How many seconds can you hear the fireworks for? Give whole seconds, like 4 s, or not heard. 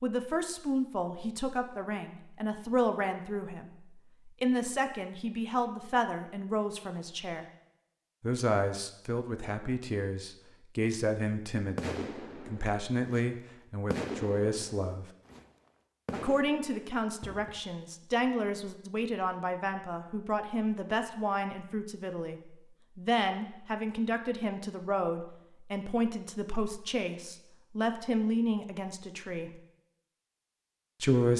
5 s.